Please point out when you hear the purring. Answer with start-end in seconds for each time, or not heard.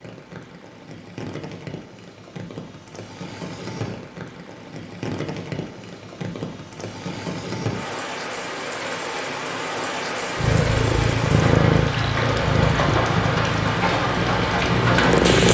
10.3-15.4.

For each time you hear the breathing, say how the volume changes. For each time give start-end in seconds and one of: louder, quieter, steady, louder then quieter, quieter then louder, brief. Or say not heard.
not heard.